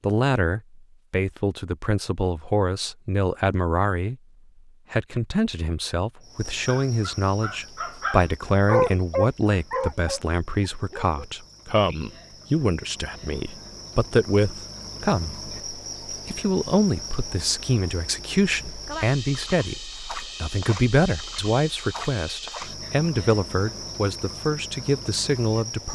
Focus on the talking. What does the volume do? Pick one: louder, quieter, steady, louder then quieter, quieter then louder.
steady.